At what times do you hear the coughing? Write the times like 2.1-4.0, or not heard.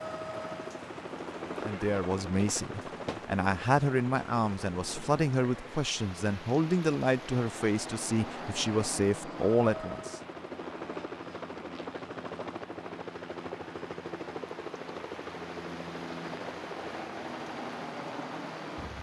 not heard.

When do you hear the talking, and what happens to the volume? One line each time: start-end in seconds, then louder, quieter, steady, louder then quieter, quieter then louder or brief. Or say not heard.
1.6-10.2 steady.